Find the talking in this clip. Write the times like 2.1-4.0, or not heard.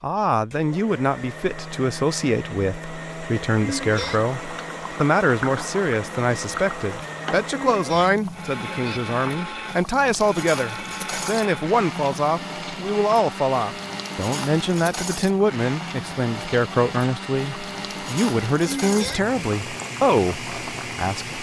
0.0-21.3.